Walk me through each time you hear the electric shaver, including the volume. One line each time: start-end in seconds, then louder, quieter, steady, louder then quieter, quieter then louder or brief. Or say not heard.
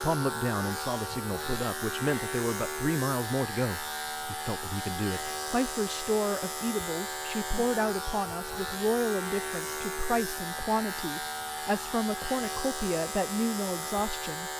0.0-14.5 steady.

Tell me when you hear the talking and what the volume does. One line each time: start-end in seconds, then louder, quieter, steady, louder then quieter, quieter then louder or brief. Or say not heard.
0.0-14.5 steady.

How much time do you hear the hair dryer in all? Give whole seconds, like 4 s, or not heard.
not heard.